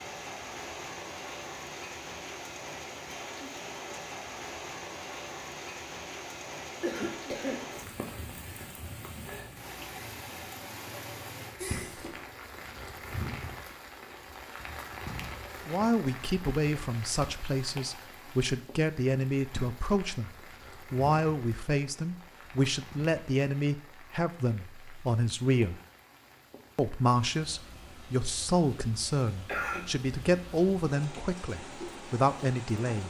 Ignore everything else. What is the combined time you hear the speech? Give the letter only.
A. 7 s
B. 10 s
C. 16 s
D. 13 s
C.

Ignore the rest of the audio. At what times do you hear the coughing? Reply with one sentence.
You can hear the coughing from 6.8 to 7.7 s, from 11.6 to 12.2 s and from 29.4 to 29.9 s.